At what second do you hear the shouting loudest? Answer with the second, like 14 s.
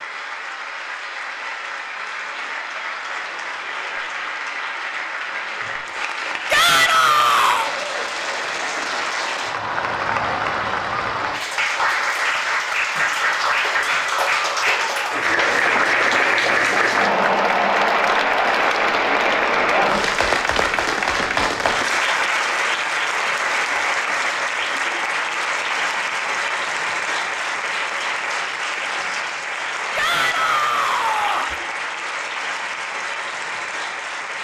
7 s.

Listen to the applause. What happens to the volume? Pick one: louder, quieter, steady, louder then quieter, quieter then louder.
louder then quieter.